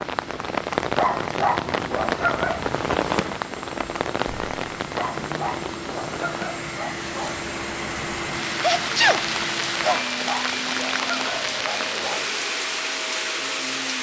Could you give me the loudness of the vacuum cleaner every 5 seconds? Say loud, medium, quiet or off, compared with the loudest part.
medium, loud, loud.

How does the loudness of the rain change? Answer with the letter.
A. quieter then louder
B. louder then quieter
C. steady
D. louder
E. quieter
A.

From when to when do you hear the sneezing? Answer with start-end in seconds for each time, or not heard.
8.5-10.0.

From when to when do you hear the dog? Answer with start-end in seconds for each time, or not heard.
0.9-2.7, 5.0-7.5, 9.8-12.2.